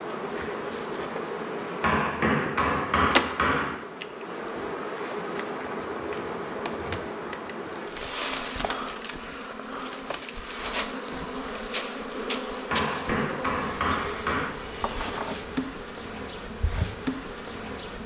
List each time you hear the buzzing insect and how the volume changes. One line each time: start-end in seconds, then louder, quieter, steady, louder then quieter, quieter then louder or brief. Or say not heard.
0.0-18.0 steady.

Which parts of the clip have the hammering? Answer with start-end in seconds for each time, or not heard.
1.8-3.8, 12.7-14.5.